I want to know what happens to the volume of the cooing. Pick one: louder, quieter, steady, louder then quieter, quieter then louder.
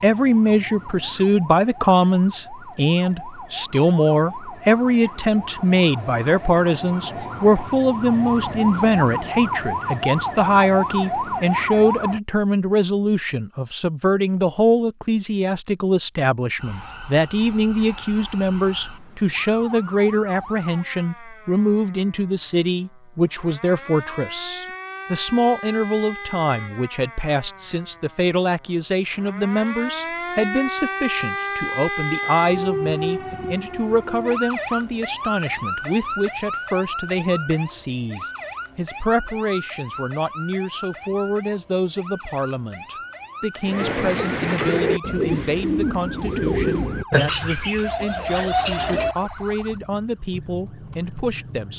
steady.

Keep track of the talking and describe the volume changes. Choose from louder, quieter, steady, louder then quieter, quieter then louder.
quieter.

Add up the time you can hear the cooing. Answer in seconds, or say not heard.
6 s.